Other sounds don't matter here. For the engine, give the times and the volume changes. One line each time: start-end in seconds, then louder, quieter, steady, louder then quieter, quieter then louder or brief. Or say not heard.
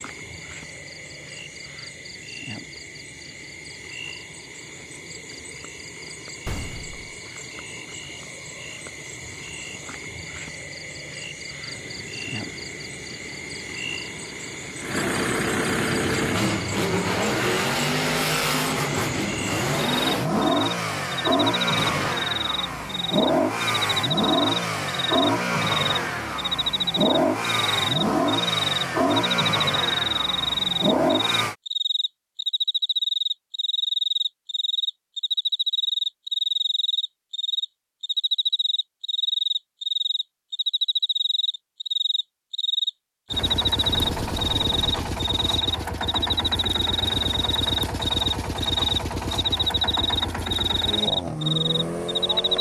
11.7-31.6 louder
43.3-52.5 steady.